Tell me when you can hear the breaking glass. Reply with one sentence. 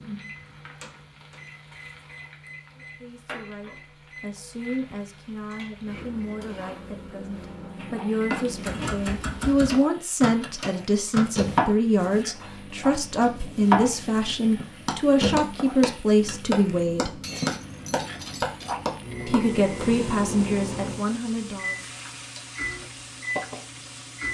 The breaking glass can be heard from 17.2 to 18.8 s.